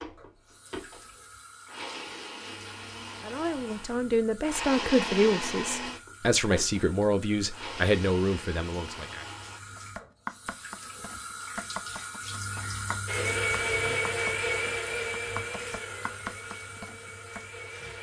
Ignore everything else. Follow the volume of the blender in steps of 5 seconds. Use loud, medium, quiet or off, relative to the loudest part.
medium, medium, loud, medium.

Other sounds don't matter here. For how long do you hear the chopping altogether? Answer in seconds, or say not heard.
8 s.